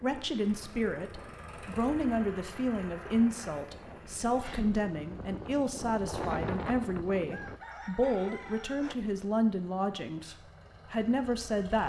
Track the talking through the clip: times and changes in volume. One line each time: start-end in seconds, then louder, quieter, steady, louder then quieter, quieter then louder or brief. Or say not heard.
0.0-11.8 steady.